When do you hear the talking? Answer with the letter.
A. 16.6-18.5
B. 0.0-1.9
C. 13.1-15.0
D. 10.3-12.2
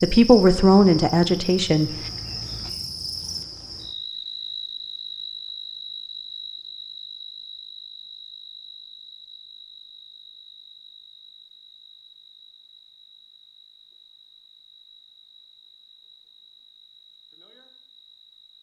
B.